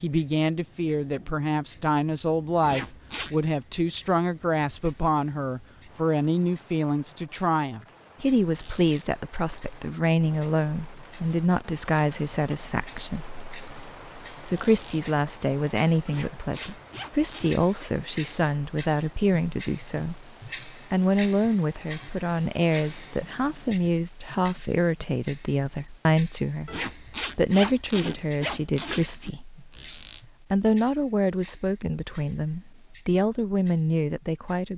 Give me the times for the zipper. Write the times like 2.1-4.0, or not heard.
2.6-3.4, 16.1-17.9, 26.6-29.3.